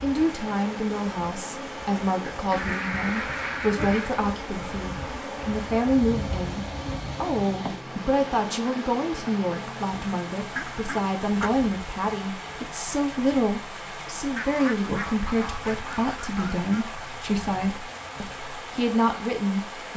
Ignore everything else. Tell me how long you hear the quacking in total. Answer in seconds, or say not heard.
5 s.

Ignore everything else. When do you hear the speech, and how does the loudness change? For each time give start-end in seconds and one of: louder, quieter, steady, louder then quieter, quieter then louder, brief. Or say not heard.
0.0-19.9 steady.